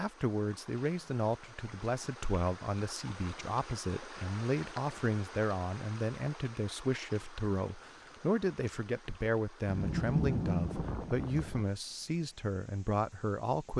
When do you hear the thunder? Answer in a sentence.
You can hear the thunder from 9.7 to 11.7 s.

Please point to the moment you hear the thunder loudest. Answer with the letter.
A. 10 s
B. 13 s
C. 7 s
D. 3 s
A.